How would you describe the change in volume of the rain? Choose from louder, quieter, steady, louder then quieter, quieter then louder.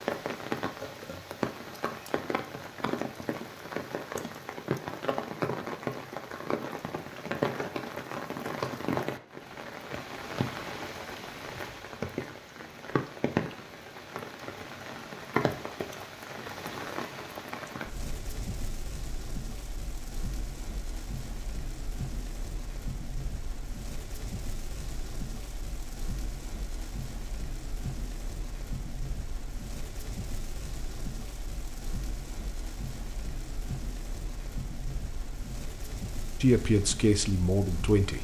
quieter.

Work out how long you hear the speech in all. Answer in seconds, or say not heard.
2 s.